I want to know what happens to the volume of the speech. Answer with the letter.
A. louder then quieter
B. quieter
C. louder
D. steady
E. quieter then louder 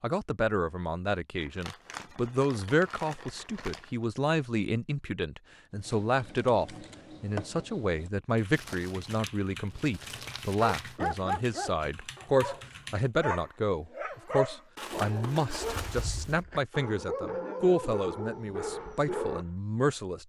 D.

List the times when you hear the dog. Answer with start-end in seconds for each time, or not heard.
10.6-19.4.